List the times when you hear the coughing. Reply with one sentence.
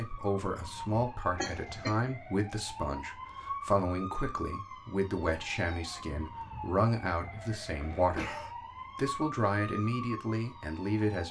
The coughing can be heard from 1.4 to 1.9 s and from 7.7 to 8.6 s.